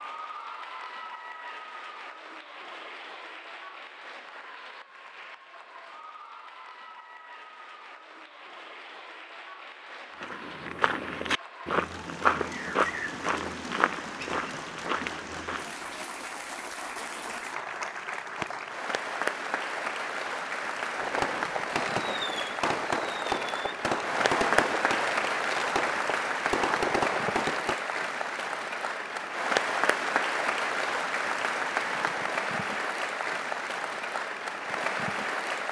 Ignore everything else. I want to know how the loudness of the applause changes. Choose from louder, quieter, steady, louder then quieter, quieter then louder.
louder.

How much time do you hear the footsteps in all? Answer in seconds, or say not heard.
6 s.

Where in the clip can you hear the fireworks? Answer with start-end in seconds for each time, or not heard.
20.9-27.8.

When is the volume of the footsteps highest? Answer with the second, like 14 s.
12 s.